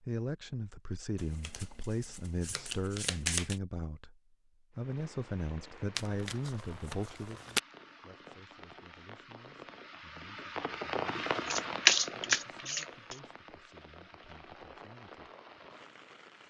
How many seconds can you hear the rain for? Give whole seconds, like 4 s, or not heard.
12 s.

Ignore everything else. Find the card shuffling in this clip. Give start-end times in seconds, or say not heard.
1.1-3.6, 6.0-7.6, 11.4-13.2.